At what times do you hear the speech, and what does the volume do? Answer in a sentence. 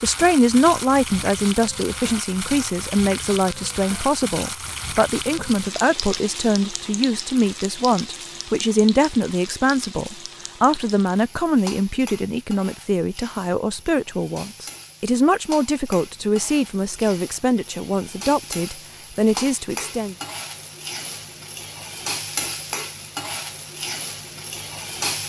The speech can be heard from 0.0 to 20.1 s, at a steady volume.